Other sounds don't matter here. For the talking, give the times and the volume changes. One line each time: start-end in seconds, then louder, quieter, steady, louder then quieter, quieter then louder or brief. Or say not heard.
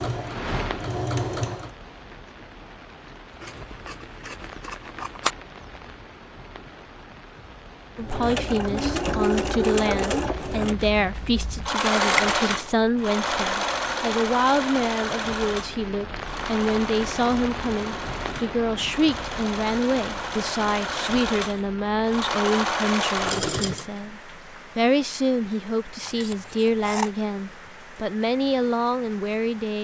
8.0-29.7 steady.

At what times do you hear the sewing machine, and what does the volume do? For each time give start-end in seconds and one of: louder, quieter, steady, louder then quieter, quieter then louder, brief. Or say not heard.
0.0-1.8 brief
8.0-23.9 quieter then louder.